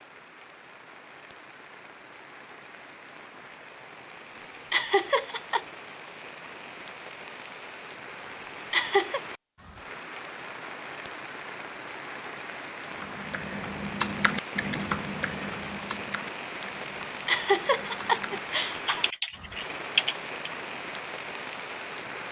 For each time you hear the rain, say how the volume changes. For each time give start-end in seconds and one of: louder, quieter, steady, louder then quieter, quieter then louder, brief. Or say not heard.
0.0-22.2 louder.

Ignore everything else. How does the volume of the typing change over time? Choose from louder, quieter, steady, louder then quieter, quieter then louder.
quieter then louder.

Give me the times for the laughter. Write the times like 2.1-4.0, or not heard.
4.3-5.6, 8.3-9.2, 16.9-19.1.